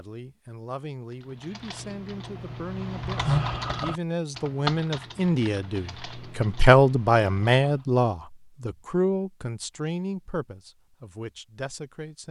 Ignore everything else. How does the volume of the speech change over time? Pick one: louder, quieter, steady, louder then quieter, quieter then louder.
louder then quieter.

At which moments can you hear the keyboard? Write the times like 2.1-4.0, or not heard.
1.1-7.8.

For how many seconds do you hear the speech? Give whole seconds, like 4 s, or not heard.
12 s.